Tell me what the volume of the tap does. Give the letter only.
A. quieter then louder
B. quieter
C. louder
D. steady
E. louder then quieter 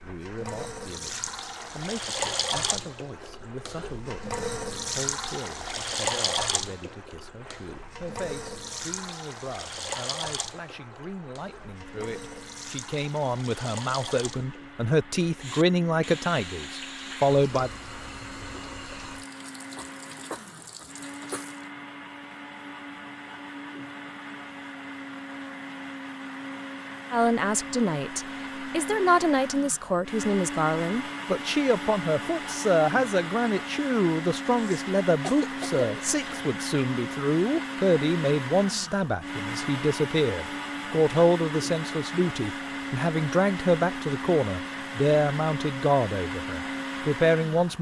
B.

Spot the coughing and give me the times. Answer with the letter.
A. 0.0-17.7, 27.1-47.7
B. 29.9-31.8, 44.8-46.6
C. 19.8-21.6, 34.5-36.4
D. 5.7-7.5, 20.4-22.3
C.